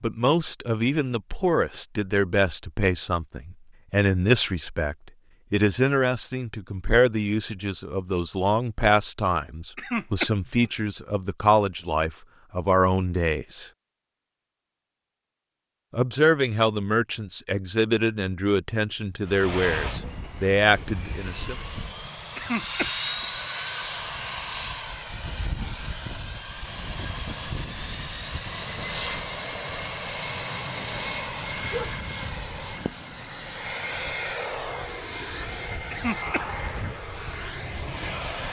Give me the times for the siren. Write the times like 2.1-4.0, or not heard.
not heard.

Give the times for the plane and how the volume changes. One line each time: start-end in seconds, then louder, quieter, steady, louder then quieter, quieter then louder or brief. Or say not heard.
19.2-38.4 steady.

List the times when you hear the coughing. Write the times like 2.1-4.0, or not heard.
9.8-10.8, 22.4-23.2, 35.9-36.9.